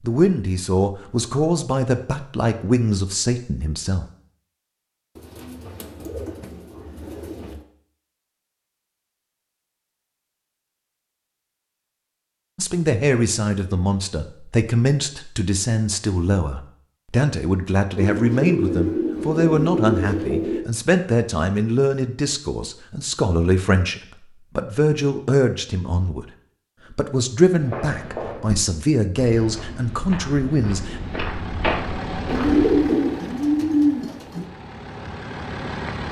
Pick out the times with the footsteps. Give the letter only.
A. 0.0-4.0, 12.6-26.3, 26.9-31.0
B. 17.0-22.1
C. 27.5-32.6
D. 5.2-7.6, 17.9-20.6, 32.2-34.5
C.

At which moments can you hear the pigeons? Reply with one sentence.
You can hear the pigeons from 5.2 to 7.6 s, from 17.9 to 20.6 s and from 32.2 to 34.5 s.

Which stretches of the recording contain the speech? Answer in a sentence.
The speech can be heard from 0.0 to 4.0 s, from 12.6 to 26.3 s and from 26.9 to 31.0 s.